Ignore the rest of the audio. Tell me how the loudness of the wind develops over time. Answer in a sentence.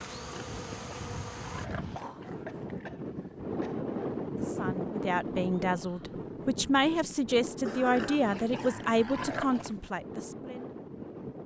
The volume of the wind goes up, then down.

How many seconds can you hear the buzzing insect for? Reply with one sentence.
You can hear the buzzing insect for 2 seconds altogether.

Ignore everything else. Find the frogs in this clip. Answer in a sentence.
You can't hear the frogs here.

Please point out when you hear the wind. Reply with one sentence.
You can hear the wind from 0.0 to 11.4 s.